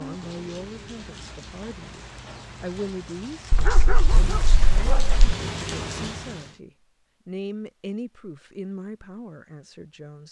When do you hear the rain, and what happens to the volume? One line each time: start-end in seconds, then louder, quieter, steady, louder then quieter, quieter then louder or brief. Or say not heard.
0.0-6.5 louder.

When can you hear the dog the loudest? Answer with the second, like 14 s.
4 s.